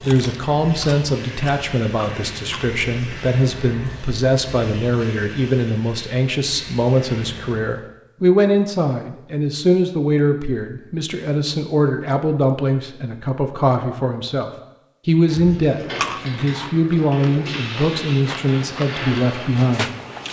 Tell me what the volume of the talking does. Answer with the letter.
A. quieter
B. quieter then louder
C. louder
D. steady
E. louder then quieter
D.